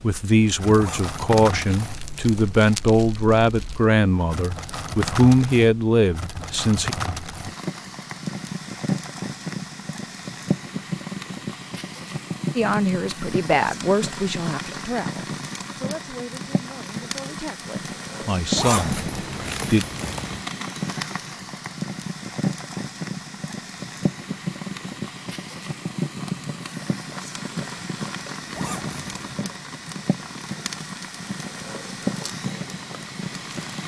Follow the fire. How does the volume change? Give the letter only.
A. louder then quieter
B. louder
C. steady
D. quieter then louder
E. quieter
C.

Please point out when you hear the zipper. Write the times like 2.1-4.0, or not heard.
0.8-2.8, 18.6-20.4, 28.5-29.4.